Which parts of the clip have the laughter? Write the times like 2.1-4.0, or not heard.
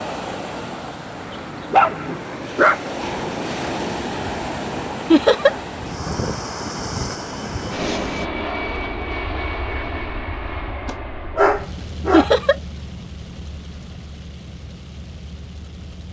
5.1-5.5, 12.1-12.6.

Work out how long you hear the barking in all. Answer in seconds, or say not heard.
3 s.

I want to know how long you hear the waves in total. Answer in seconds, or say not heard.
8 s.